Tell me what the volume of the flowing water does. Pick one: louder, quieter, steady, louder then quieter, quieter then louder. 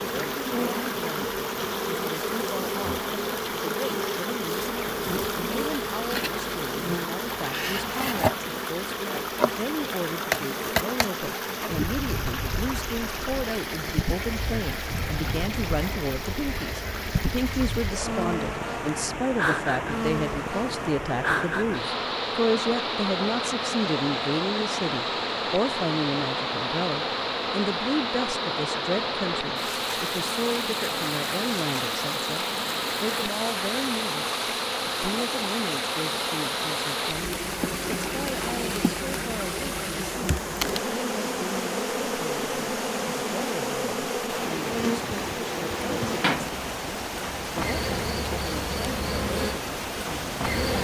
steady.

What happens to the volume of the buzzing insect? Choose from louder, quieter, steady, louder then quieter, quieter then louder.
steady.